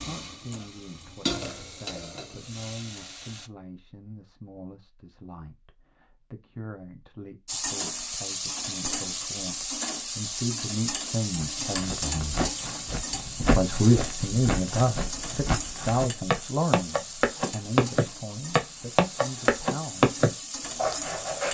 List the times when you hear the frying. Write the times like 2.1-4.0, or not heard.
0.0-3.5, 7.5-21.4.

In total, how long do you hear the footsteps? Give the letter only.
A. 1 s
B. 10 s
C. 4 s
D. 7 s
B.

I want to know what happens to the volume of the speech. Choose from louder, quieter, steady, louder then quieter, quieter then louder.
louder then quieter.